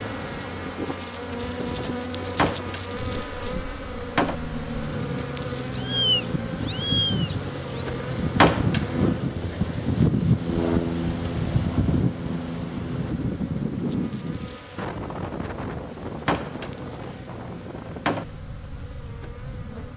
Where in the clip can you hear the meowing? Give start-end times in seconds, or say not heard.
5.7-7.8.